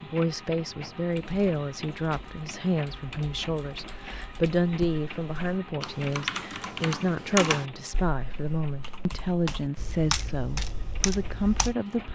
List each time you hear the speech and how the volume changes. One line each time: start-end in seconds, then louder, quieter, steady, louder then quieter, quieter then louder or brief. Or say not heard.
0.0-12.1 steady.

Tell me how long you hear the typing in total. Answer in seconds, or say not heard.
11 s.